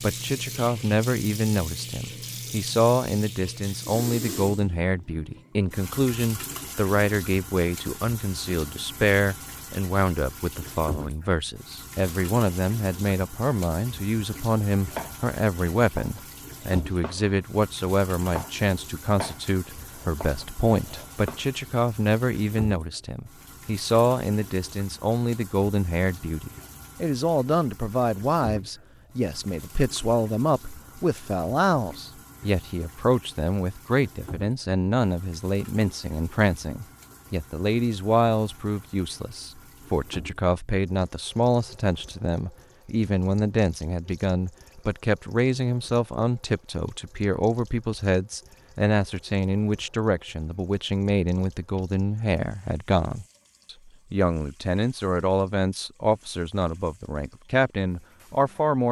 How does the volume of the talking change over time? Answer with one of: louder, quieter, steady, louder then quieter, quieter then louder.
steady.